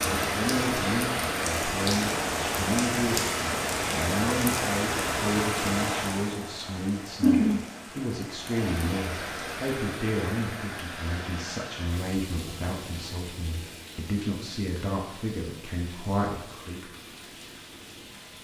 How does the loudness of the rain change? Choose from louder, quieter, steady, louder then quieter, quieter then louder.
quieter.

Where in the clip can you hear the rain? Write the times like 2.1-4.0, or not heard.
0.0-18.3.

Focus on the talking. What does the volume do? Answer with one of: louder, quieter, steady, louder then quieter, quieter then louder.
steady.